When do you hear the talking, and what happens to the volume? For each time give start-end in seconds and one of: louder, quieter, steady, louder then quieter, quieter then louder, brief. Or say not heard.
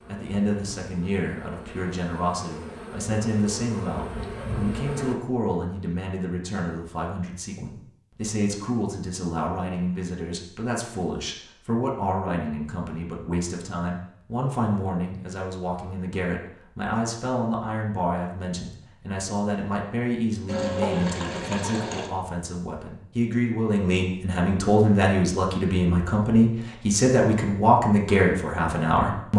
0.1-29.3 louder.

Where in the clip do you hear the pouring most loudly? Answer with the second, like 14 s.
21 s.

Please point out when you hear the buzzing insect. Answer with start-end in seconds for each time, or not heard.
0.0-5.2.